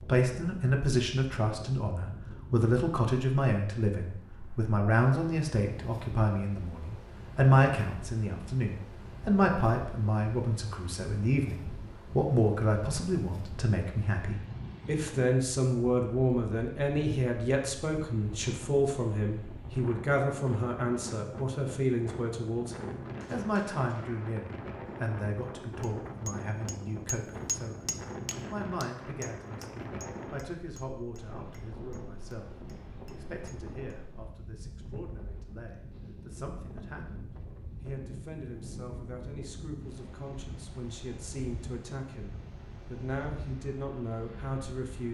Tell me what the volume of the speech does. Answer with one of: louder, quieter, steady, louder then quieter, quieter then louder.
quieter.